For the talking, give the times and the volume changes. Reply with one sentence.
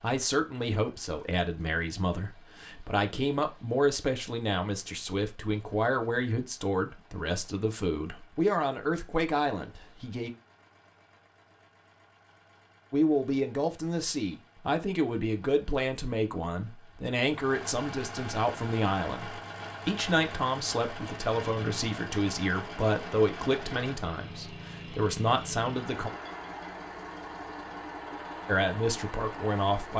The talking can be heard from 0.0 to 10.3 s, at a steady volume; from 12.9 to 26.1 s, at a steady volume; and briefly from 28.4 to 29.9 s.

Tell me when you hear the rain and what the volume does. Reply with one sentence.
The rain can't be heard in this clip.